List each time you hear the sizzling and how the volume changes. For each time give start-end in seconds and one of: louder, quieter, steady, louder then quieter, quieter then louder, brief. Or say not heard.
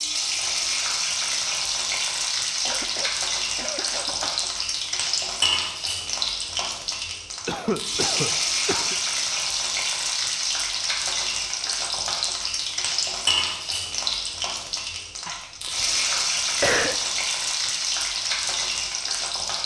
0.0-19.6 steady.